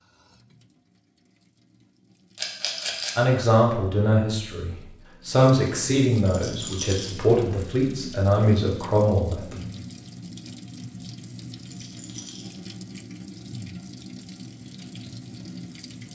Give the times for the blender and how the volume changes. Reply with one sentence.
The blender can't be heard in this clip.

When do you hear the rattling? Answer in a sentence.
The rattling can be heard from 2.4 to 3.1 s, from 6.2 to 7.2 s and from 11.6 to 12.6 s.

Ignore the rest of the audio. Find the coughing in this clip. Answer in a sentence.
The coughing can't be heard in this clip.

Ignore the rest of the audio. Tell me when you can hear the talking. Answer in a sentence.
You can hear the talking from 3.1 to 9.6 s.